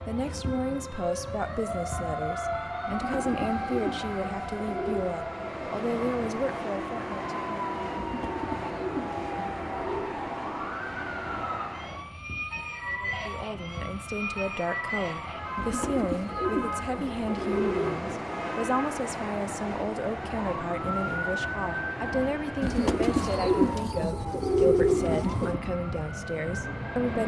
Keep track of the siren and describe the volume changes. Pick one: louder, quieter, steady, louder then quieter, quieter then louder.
steady.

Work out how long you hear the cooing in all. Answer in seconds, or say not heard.
10 s.